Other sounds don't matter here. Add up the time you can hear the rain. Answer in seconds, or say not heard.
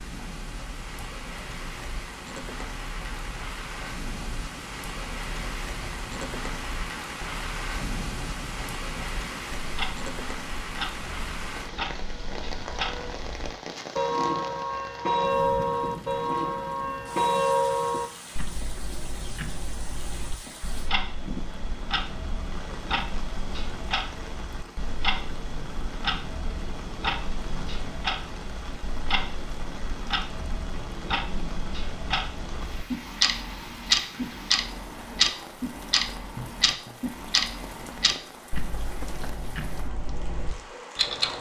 41 s.